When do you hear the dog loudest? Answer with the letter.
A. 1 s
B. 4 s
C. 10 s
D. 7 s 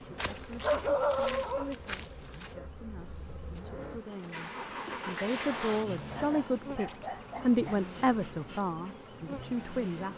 A.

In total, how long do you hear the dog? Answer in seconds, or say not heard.
4 s.